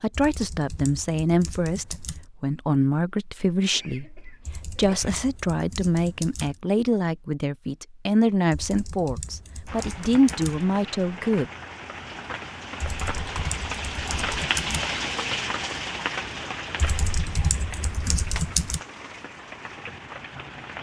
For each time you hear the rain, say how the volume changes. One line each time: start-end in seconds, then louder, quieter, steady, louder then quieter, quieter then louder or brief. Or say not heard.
9.7-20.7 louder then quieter.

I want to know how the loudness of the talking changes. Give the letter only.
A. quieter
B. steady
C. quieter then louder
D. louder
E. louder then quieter
B.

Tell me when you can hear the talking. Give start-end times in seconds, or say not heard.
0.0-11.5.